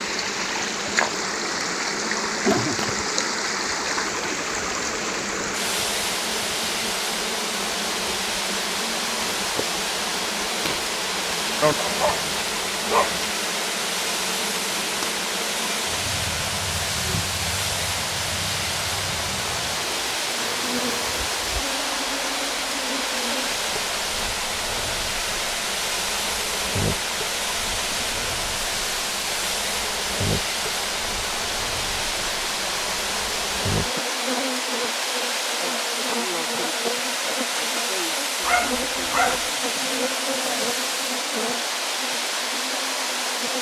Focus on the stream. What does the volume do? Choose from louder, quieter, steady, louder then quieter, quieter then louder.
steady.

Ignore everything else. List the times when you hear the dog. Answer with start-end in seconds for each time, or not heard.
11.6-13.2, 38.5-39.5.